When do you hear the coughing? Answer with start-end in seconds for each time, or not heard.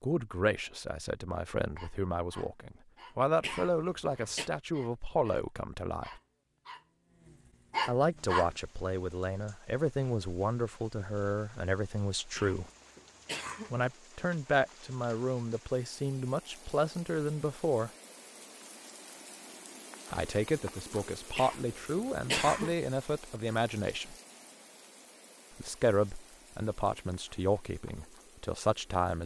3.4-4.5, 12.3-13.8, 21.4-22.8.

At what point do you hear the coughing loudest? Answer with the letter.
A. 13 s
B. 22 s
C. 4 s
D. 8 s
B.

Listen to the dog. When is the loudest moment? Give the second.
8 s.